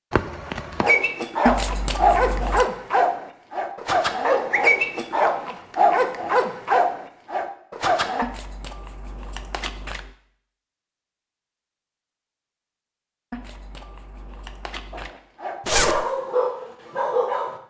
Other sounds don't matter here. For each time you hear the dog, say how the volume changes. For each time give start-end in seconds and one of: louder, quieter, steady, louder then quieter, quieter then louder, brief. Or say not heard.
0.8-8.2 steady
14.9-17.6 brief.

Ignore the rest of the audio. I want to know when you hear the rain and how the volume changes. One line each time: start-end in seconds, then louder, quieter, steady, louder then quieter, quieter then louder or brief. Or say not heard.
not heard.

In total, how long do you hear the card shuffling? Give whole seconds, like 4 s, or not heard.
5 s.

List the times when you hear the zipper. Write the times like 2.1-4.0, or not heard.
0.1-0.9, 15.7-16.1.